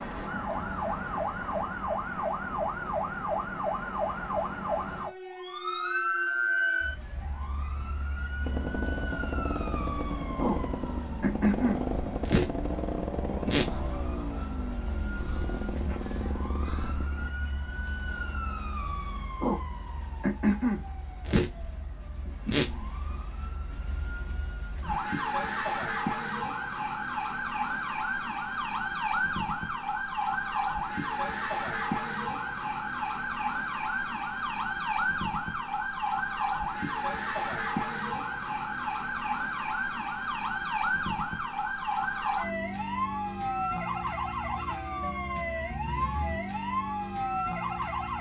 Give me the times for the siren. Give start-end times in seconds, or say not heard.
0.0-48.1.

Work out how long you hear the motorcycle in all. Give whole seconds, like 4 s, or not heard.
9 s.